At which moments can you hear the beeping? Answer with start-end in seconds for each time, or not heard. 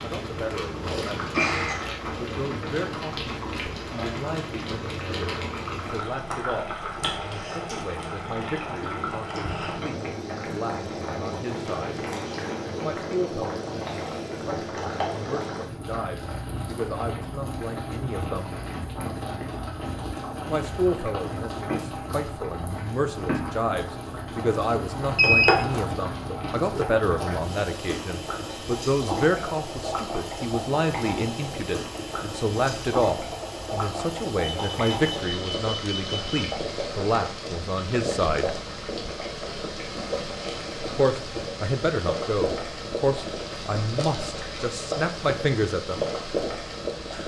1.3-1.9, 25.1-25.8, 34.4-36.4.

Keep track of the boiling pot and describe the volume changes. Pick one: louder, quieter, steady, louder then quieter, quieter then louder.
steady.